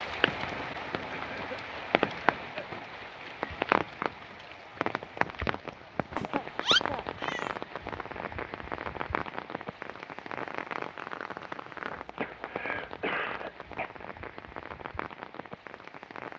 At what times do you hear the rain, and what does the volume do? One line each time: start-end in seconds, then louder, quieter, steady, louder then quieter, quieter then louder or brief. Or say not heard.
0.0-16.3 quieter.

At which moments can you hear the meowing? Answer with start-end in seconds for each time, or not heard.
6.2-7.5.